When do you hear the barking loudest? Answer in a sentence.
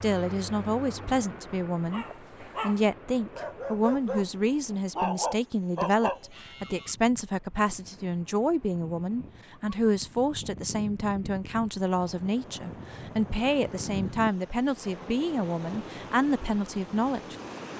The loudest moment of the barking is at 5 seconds.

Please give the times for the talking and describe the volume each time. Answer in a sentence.
You can hear the talking from 0.0 to 17.4 s, at a steady volume.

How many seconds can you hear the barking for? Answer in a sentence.
You can hear the barking for 5 seconds altogether.